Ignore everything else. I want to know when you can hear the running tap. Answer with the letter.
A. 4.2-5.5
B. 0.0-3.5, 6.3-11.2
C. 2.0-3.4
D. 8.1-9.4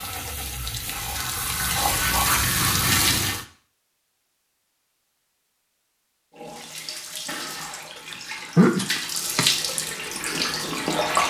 B.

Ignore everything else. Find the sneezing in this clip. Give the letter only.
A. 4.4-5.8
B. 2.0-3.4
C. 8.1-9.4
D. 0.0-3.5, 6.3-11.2
C.